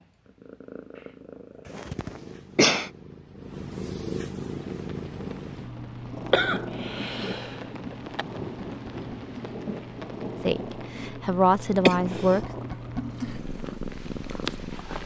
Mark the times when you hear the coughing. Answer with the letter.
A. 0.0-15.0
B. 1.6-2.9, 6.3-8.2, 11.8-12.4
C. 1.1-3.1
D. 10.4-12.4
B.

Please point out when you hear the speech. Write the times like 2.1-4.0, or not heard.
10.4-12.4.